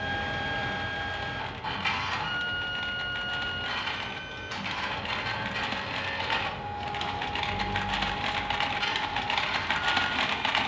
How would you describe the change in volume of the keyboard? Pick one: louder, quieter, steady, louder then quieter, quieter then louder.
louder.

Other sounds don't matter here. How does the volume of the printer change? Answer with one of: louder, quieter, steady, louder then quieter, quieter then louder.
steady.